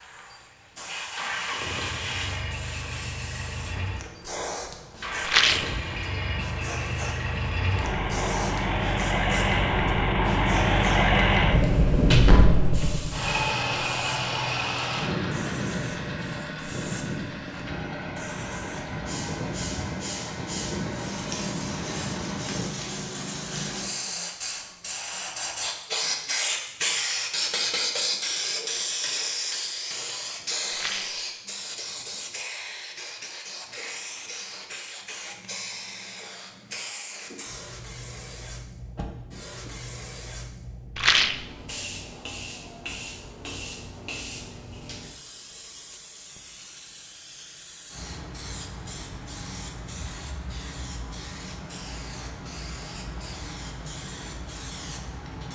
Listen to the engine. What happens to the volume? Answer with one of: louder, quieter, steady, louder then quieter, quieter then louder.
louder then quieter.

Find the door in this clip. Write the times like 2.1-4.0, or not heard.
11.9-12.8, 39.0-39.7.